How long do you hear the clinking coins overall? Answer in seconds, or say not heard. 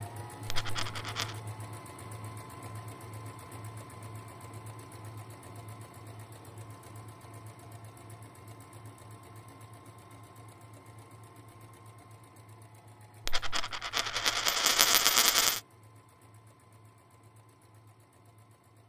3 s.